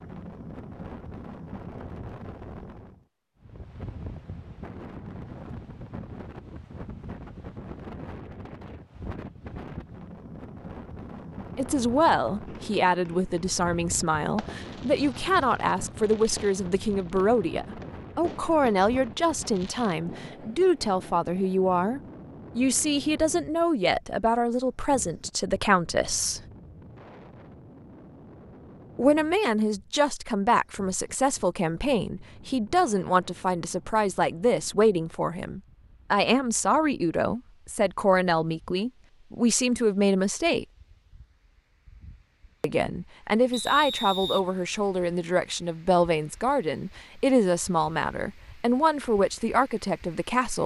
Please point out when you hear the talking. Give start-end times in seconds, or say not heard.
11.6-26.4, 28.9-40.6, 42.6-50.6.